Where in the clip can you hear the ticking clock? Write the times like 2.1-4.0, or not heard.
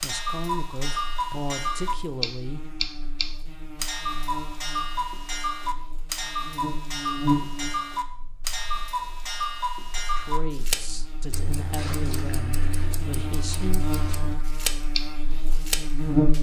0.0-16.3.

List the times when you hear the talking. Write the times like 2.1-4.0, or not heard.
0.0-2.6, 10.2-13.8.